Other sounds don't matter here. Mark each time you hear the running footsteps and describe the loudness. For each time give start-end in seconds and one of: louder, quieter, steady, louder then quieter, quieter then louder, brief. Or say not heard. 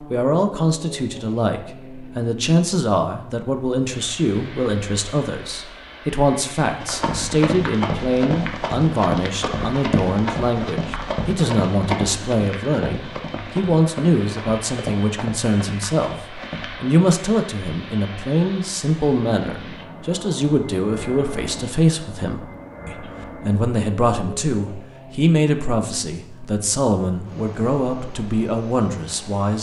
6.8-16.8 quieter.